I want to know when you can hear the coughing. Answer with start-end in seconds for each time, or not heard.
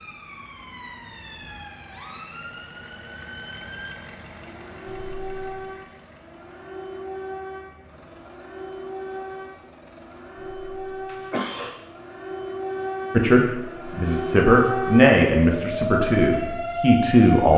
4.8-5.5, 10.4-11.8.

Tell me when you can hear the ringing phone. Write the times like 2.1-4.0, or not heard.
not heard.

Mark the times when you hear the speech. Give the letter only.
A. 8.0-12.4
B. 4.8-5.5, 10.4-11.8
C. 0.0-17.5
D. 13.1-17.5
D.